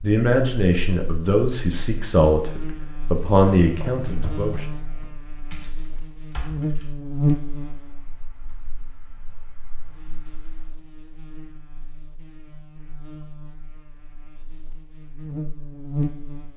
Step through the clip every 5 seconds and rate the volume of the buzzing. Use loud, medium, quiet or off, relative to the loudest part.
medium, loud, quiet, loud.